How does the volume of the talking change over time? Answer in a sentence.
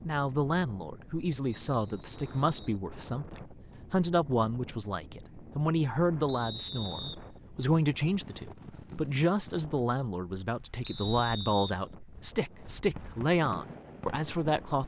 The loudness of the talking stays about the same.